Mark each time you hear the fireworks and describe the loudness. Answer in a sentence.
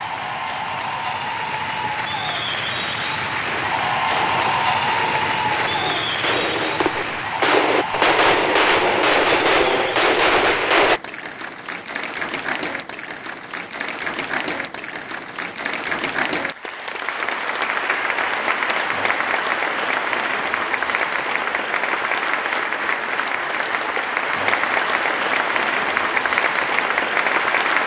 You can hear the fireworks from 3.5 to 11.0 s, getting louder.